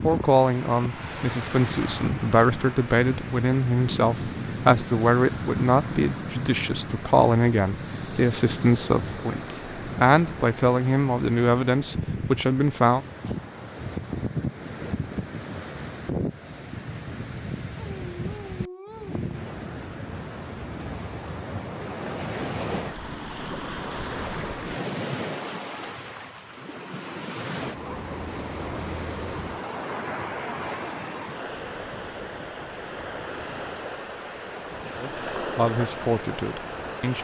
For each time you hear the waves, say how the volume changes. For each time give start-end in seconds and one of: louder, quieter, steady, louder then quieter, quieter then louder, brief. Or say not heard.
0.0-37.1 steady.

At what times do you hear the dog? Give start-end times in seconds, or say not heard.
17.8-19.2.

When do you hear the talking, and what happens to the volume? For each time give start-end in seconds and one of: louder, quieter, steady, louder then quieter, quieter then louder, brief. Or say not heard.
0.0-13.1 steady
35.0-37.1 brief.